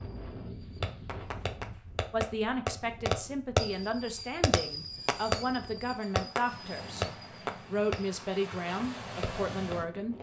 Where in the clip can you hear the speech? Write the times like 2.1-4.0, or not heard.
2.1-7.0, 7.7-10.1.